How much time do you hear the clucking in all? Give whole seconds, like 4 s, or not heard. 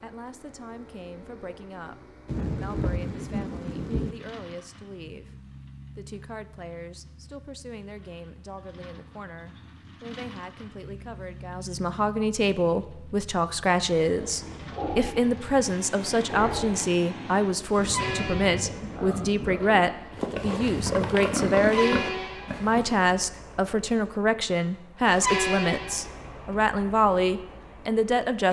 not heard.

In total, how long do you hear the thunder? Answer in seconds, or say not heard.
4 s.